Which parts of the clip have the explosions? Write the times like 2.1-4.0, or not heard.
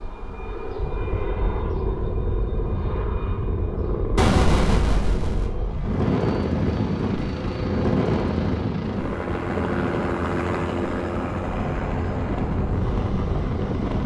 4.2-5.5.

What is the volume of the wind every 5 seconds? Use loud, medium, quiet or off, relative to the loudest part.
medium, loud, loud.